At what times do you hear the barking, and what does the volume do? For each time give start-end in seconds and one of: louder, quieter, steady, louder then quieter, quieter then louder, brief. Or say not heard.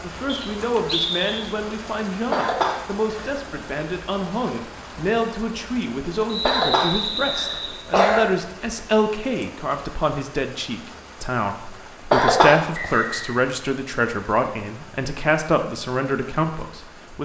not heard.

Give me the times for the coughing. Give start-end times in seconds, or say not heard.
2.3-3.3, 6.5-8.3, 12.1-13.0.